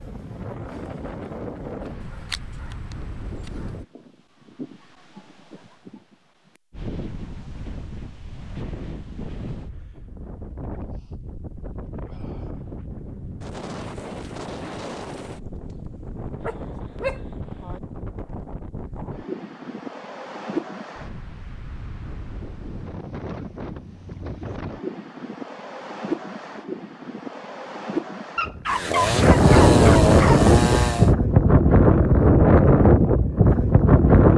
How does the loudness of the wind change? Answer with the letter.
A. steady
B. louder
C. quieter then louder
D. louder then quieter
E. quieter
B.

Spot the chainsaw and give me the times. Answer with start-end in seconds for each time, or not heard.
28.6-31.1.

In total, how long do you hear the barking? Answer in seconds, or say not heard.
5 s.